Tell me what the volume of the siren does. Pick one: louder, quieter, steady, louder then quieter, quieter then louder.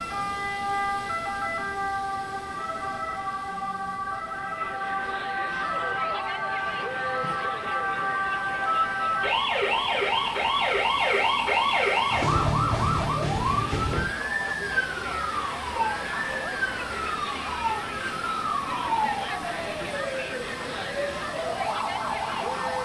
louder then quieter.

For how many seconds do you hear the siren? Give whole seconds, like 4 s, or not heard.
23 s.